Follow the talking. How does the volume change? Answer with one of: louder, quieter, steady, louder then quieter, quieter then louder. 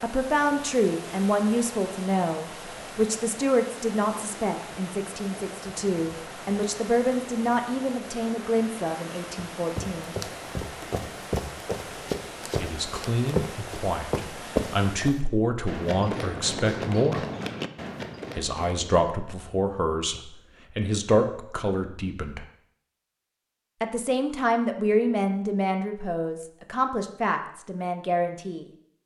steady.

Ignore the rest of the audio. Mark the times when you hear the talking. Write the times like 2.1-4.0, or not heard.
0.0-10.2, 12.6-17.2, 18.4-22.4, 23.8-28.6.